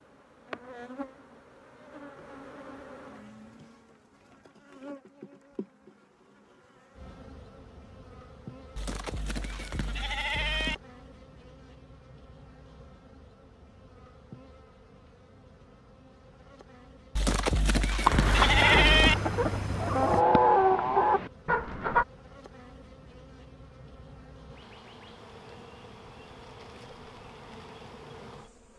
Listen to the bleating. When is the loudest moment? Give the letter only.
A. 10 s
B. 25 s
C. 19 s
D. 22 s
C.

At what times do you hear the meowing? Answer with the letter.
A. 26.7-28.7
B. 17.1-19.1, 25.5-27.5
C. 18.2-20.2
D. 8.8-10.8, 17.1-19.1
C.